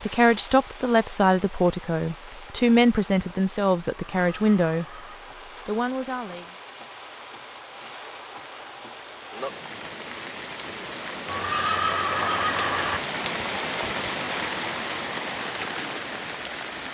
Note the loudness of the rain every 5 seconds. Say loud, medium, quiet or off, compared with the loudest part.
quiet, medium, loud, loud.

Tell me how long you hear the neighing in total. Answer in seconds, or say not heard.
3 s.